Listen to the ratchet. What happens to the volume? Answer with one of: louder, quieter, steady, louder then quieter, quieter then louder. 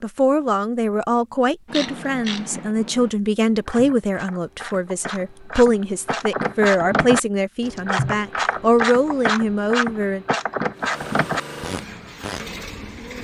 louder.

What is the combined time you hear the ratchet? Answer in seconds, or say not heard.
11 s.